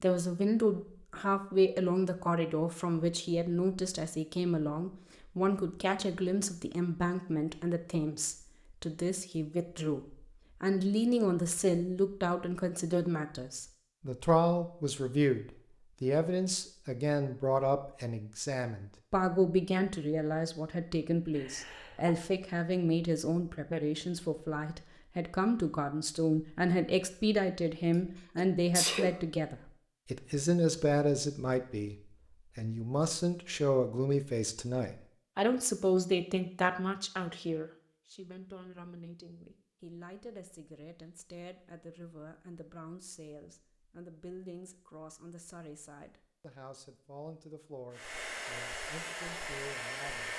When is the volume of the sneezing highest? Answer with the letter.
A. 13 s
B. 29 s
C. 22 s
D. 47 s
B.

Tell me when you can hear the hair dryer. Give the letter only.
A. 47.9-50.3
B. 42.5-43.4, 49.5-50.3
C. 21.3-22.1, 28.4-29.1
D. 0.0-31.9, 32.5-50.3
A.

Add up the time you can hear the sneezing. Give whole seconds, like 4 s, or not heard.
2 s.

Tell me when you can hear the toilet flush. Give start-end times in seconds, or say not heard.
not heard.